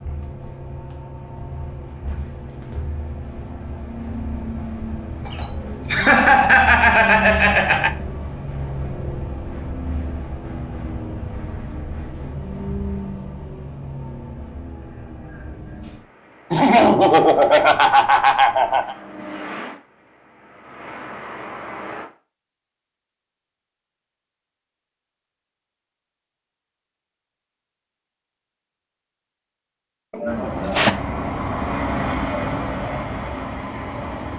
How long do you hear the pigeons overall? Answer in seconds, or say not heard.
not heard.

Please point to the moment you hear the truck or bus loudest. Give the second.
32 s.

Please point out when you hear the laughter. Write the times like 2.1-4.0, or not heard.
5.2-7.9, 16.5-18.9, 30.1-30.9.